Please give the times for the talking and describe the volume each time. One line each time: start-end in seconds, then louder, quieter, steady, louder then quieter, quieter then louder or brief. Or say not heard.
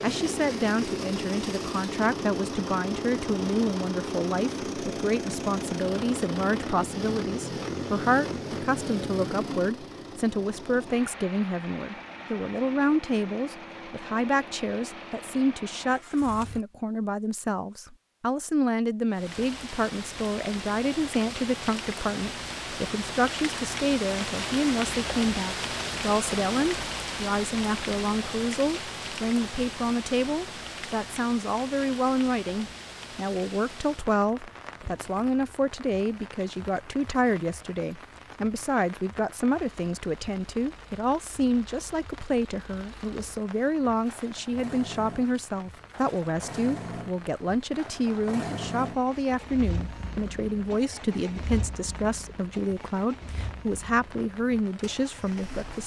0.0-55.8 steady.